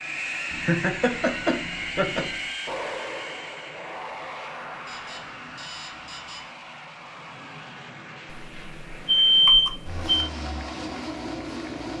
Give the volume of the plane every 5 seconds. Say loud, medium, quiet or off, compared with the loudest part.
loud, medium, loud.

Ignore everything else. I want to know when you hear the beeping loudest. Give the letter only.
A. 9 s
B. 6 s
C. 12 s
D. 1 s
A.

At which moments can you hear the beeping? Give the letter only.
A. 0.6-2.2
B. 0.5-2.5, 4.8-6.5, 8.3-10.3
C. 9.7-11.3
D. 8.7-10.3
B.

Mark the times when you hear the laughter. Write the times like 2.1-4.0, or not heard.
0.6-2.2.